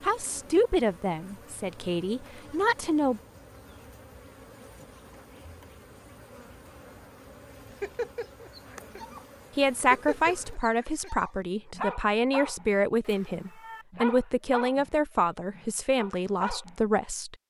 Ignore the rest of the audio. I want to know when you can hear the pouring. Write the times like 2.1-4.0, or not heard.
not heard.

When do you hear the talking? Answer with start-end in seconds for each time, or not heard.
0.0-3.2, 9.6-17.4.